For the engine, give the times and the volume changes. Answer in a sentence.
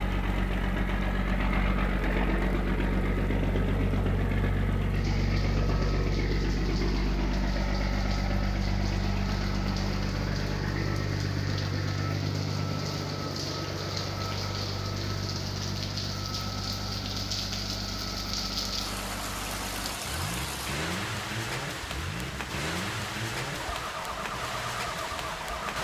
The engine can be heard from 0.0 to 25.7 s, getting quieter.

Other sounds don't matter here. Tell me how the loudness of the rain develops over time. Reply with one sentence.
The volume of the rain goes up.